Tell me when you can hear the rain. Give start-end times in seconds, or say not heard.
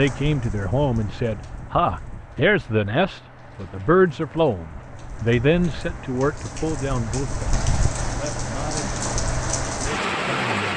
0.0-10.7.